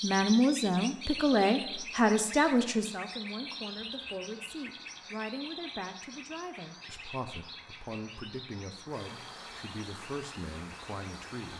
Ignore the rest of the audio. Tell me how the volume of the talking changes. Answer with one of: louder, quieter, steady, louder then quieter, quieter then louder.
quieter.